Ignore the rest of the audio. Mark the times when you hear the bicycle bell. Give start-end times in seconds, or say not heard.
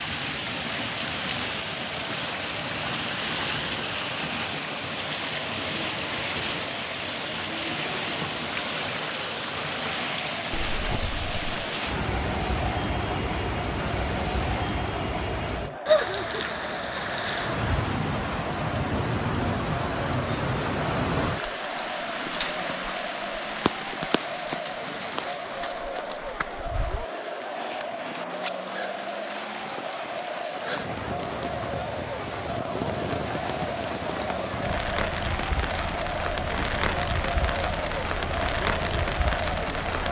10.5-11.6.